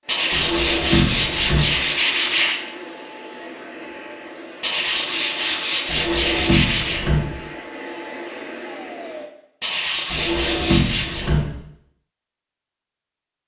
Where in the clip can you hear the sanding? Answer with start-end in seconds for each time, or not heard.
0.1-2.6, 4.6-7.0, 9.6-11.3.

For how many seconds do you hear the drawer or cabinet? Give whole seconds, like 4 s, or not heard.
4 s.